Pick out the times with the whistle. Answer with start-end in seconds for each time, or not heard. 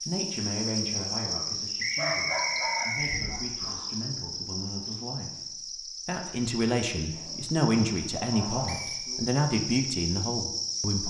1.8-3.2, 8.7-9.1.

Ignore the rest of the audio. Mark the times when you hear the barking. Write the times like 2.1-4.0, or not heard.
1.9-3.9, 7.1-8.8.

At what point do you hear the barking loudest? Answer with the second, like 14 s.
2 s.